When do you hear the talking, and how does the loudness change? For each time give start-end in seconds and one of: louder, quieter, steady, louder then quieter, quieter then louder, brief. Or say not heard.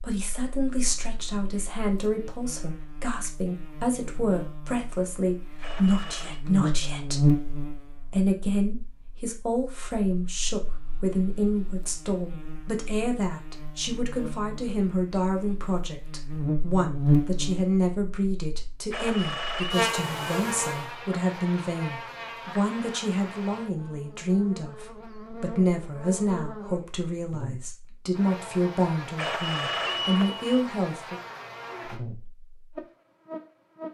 0.0-31.2 steady.